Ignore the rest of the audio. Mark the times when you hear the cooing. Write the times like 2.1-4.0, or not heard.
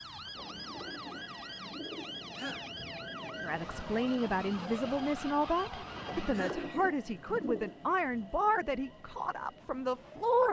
0.2-2.2, 6.0-7.8.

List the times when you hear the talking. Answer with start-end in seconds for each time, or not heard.
3.5-10.4.